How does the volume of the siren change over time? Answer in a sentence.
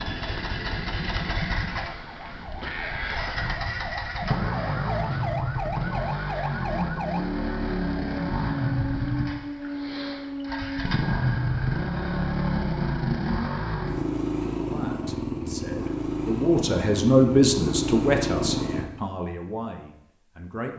The loudness of the siren goes up.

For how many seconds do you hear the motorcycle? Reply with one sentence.
The motorcycle can be heard for 19 seconds in total.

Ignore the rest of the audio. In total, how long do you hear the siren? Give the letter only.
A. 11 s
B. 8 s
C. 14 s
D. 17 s
A.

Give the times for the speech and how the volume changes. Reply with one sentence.
The speech can be heard from 14.6 to 20.7 s, getting louder then quieter.